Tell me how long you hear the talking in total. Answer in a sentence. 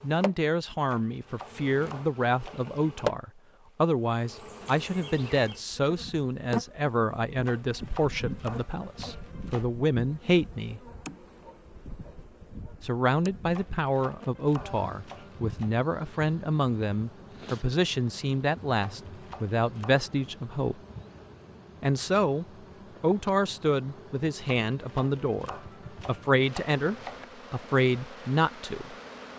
The talking can be heard for 26 seconds in total.